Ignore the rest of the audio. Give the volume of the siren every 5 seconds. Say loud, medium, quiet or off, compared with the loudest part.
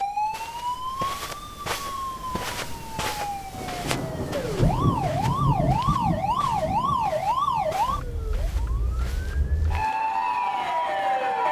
medium, loud, loud.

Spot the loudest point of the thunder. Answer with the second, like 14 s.
5 s.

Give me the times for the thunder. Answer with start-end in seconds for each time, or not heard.
3.5-8.1.